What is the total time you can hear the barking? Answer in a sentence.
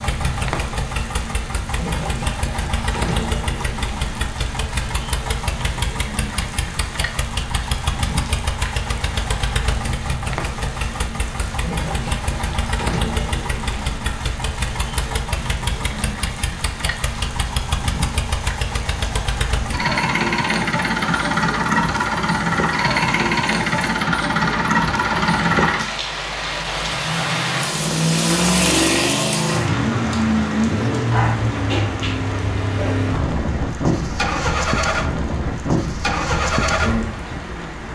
You can hear the barking for 2 seconds altogether.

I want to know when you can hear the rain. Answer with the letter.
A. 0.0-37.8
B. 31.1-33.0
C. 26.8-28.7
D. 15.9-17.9
A.